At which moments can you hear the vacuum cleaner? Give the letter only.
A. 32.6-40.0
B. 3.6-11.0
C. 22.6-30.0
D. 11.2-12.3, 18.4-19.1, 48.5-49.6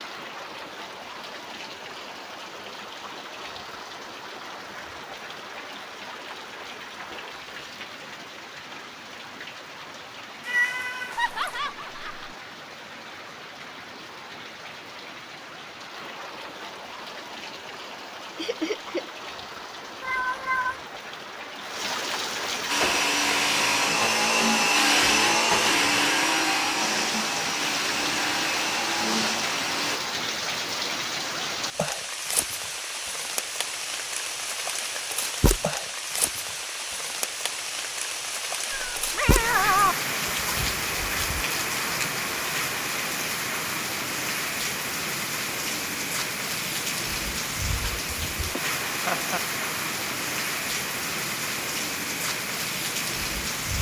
C.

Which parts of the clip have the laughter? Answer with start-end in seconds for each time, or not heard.
11.2-12.3, 18.4-19.1, 48.5-49.6.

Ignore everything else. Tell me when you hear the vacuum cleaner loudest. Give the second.
25 s.